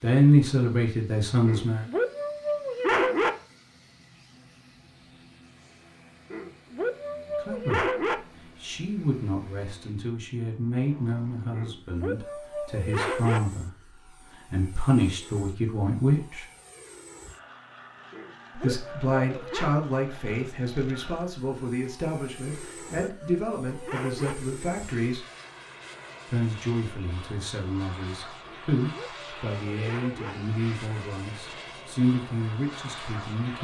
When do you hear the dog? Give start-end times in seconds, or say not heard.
1.4-3.3, 6.3-8.2, 11.5-13.4, 18.1-19.8, 22.4-24.4, 28.4-30.4.